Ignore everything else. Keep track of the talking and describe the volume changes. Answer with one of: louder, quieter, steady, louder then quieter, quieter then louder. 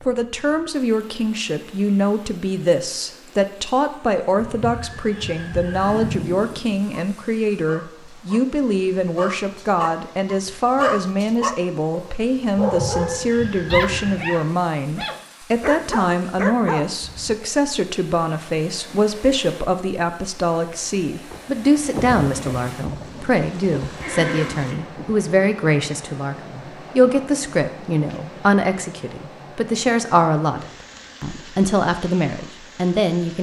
steady.